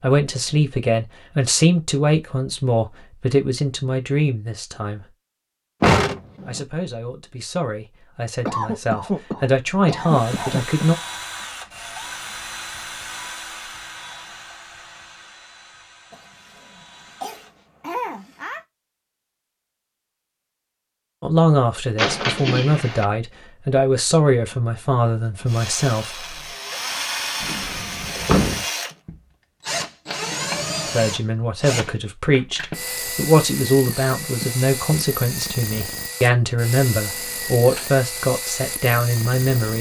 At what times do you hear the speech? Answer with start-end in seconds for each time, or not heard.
0.0-5.1, 6.5-10.9, 21.2-26.4, 30.9-39.7.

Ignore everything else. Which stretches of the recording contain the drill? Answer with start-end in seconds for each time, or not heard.
10.1-17.7, 25.4-39.7.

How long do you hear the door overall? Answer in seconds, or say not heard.
3 s.